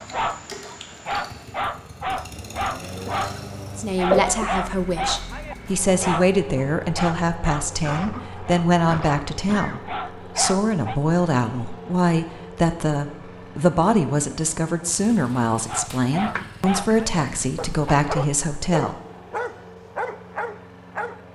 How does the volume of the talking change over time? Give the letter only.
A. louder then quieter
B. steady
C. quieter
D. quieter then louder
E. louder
B.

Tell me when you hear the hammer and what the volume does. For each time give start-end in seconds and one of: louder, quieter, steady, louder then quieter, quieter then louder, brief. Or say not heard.
not heard.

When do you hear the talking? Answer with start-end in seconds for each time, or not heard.
3.8-18.9.